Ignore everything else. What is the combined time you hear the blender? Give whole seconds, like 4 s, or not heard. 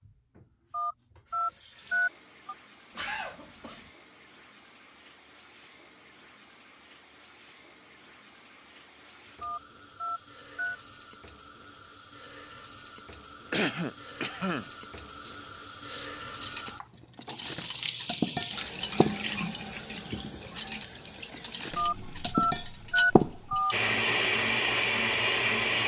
2 s.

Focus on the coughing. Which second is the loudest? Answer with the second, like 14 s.
14 s.